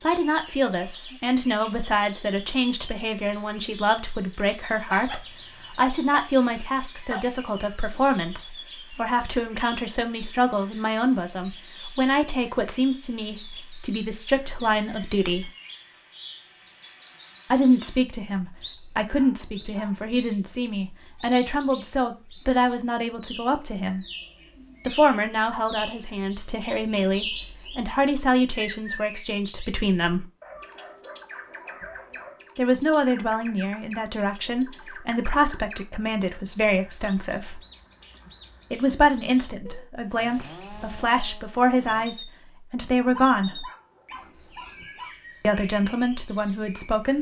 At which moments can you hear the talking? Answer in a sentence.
The talking can be heard from 0.0 to 15.5 s, from 17.5 to 24.1 s, from 24.9 to 30.2 s, from 32.5 to 37.6 s, from 38.7 to 43.6 s and from 45.4 to 47.1 s.